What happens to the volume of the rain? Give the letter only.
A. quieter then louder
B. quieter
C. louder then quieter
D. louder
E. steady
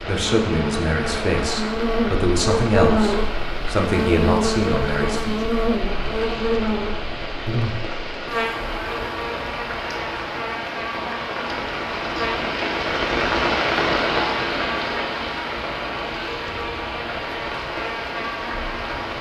C.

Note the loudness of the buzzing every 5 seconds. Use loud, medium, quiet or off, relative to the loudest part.
loud, loud, medium, medium.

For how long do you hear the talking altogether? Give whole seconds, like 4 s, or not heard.
5 s.